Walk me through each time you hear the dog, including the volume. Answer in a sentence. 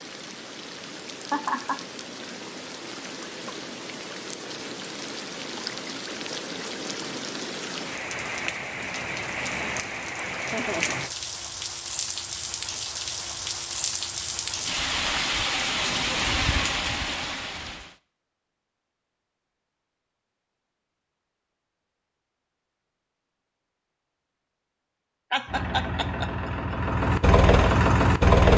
You can't hear the dog here.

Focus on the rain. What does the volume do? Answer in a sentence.
The volume of the rain goes up.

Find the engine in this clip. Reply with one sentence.
You can hear the engine from 25.4 to 28.5 s.